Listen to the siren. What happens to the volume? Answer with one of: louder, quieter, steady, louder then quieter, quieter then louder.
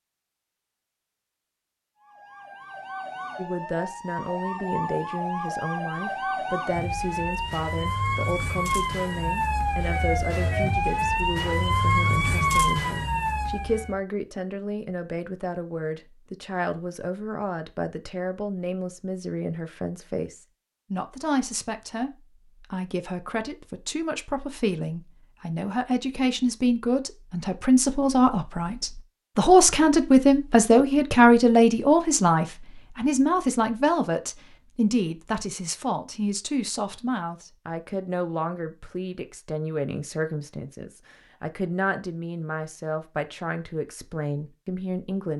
louder.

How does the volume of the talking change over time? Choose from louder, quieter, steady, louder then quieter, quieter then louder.
louder then quieter.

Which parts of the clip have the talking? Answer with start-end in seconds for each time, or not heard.
3.4-45.3.